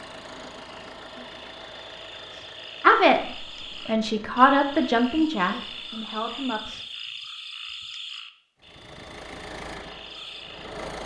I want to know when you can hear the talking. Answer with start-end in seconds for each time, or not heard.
2.8-6.7.